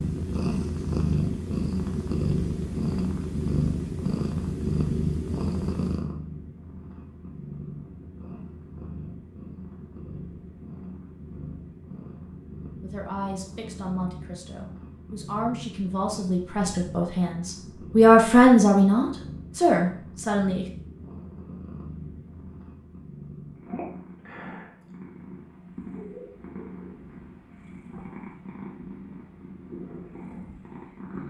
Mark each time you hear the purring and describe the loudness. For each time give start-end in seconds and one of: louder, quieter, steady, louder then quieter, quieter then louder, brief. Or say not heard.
0.0-31.2 quieter.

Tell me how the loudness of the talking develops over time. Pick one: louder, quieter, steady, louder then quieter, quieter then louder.
louder then quieter.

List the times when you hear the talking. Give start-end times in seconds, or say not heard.
12.8-20.7.